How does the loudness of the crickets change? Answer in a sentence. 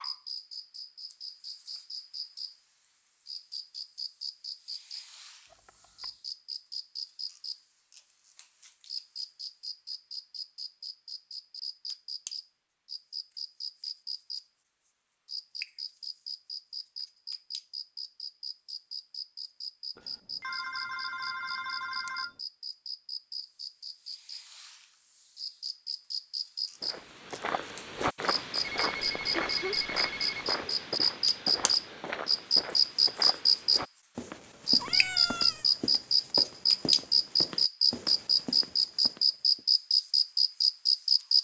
The volume of the crickets goes up.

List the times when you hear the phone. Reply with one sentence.
You can hear the phone from 5.5 to 6.2 s, from 19.9 to 22.4 s and from 28.8 to 30.6 s.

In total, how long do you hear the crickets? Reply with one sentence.
You can hear the crickets for 41 seconds altogether.